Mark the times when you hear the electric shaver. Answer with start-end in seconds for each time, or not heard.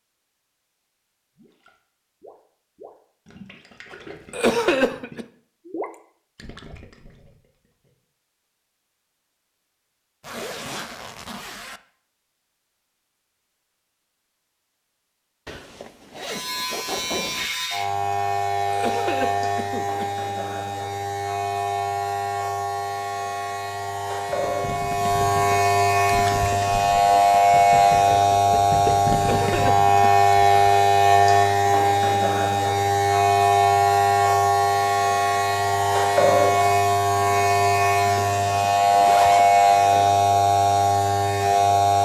16.1-42.0.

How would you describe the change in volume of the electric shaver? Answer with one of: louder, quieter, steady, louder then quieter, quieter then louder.
louder.